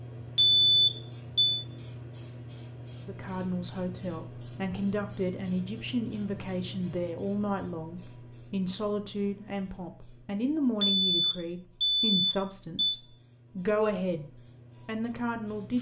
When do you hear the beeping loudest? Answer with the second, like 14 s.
1 s.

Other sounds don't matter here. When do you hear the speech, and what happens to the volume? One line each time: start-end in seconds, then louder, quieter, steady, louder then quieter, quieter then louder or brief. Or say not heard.
3.0-14.2 steady
14.8-15.7 brief.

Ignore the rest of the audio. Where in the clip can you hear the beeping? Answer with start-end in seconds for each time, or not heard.
0.3-1.6, 10.8-13.0.